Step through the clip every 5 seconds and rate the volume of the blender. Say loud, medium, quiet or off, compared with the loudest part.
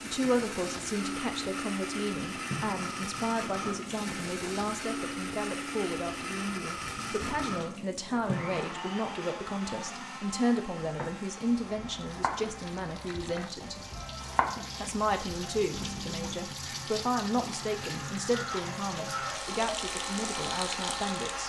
loud, loud, medium, medium, loud.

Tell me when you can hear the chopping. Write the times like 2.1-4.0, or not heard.
10.8-16.4.